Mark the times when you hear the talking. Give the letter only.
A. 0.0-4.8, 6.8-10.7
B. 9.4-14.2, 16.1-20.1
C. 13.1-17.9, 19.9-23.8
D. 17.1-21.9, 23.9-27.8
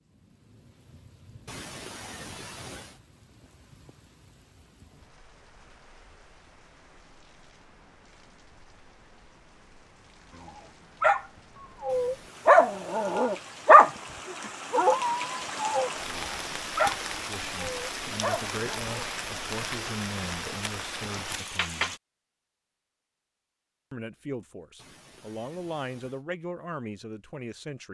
D.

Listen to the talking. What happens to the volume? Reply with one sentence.
The loudness of the talking stays about the same.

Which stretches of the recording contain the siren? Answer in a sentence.
You can't hear the siren here.